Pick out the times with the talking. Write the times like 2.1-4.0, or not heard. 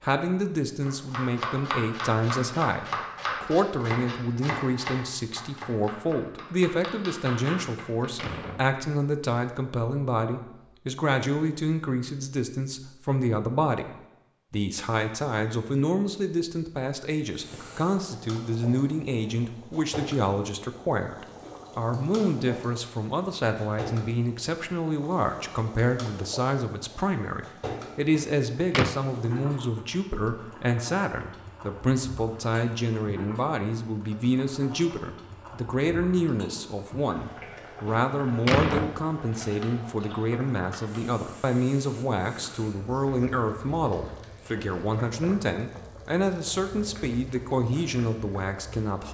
0.0-49.0.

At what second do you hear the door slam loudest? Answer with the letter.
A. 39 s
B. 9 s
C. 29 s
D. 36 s
A.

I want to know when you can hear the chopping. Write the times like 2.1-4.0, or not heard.
0.8-8.1.